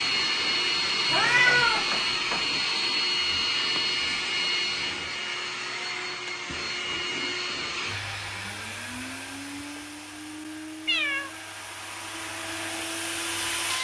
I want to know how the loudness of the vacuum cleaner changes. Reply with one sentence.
The loudness of the vacuum cleaner goes down.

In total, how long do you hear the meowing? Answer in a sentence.
You can hear the meowing for 2 seconds altogether.